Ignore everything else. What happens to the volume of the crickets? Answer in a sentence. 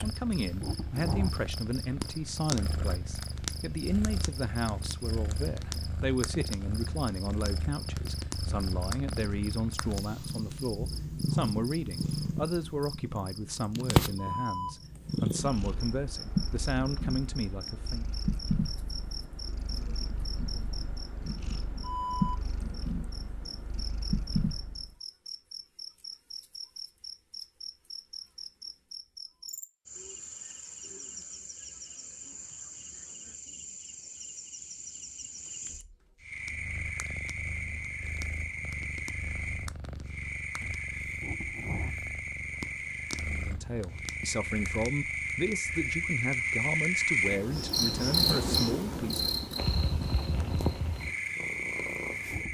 The loudness of the crickets goes up.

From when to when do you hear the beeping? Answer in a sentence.
The beeping can't be heard in this clip.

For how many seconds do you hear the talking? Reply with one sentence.
The talking can be heard for 24 seconds in total.